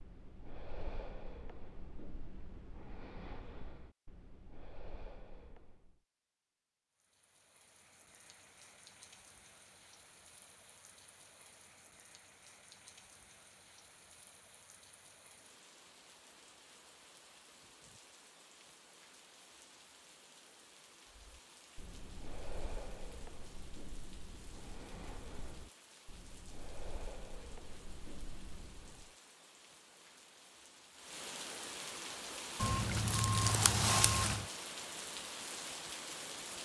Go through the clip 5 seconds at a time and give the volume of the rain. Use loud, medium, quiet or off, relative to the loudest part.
off, quiet, quiet, quiet, quiet, quiet, loud, loud.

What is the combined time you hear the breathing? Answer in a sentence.
The breathing can be heard for 14 seconds in total.